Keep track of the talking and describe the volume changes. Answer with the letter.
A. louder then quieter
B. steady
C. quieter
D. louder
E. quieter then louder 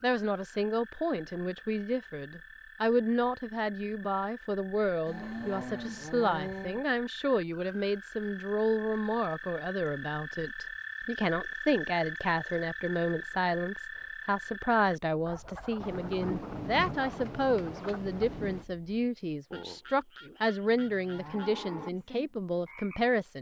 B.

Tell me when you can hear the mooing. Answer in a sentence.
You can hear the mooing from 5.0 to 6.8 s and from 20.6 to 21.9 s.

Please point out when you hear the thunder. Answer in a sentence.
You can hear the thunder from 15.8 to 18.6 s.